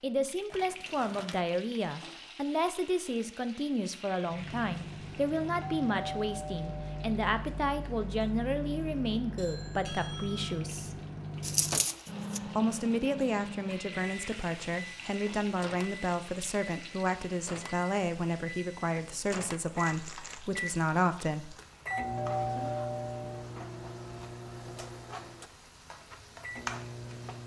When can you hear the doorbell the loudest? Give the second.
22 s.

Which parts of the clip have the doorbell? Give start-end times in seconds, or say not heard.
5.6-7.0, 9.3-10.6, 21.9-23.4.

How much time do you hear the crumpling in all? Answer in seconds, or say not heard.
3 s.